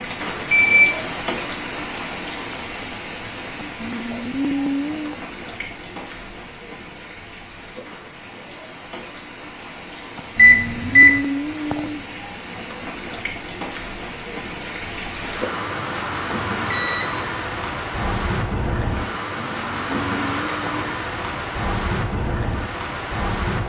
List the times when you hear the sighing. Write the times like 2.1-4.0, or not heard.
3.7-5.2, 10.2-12.0, 19.4-20.9.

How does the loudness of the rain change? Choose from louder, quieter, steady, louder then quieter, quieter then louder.
quieter then louder.